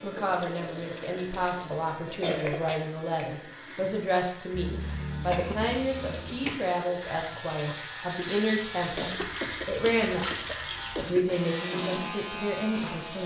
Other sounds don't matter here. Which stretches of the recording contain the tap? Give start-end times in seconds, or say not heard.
0.0-13.2.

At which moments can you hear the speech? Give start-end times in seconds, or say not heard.
0.0-13.2.